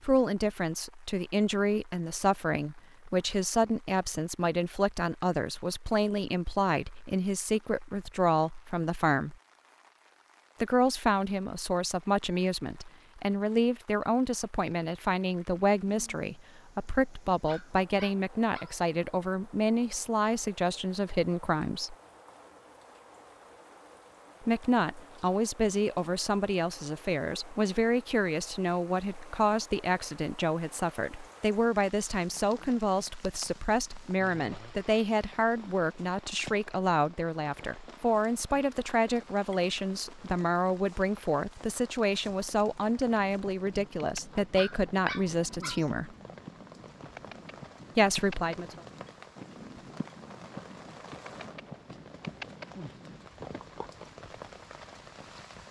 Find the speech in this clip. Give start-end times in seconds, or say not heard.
0.0-9.3, 10.6-21.9, 24.4-46.1, 48.0-48.8.